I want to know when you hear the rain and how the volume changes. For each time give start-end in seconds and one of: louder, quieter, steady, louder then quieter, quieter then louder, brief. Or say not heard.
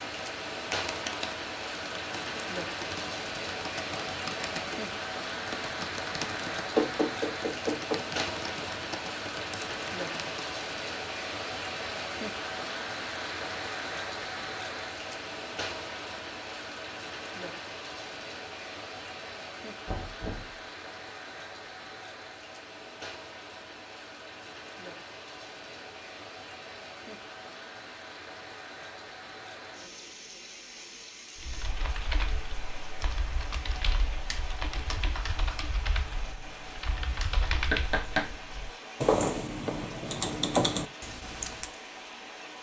0.0-42.5 quieter.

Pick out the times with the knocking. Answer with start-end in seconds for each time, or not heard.
6.8-8.0, 19.9-20.6, 37.7-38.3.